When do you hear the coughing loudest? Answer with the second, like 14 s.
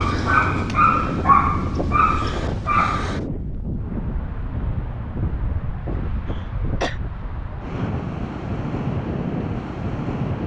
7 s.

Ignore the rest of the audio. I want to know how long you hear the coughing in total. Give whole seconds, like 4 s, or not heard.
2 s.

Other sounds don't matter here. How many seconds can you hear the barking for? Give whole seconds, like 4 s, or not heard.
3 s.